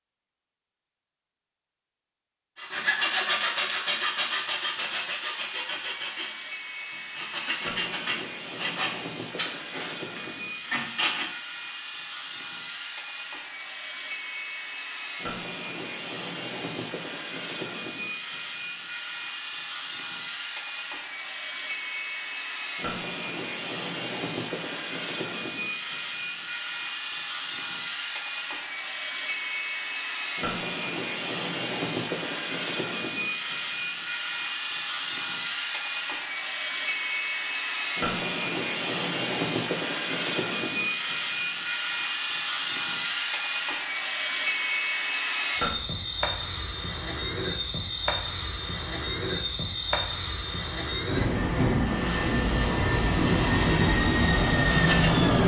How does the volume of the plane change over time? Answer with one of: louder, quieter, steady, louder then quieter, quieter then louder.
louder.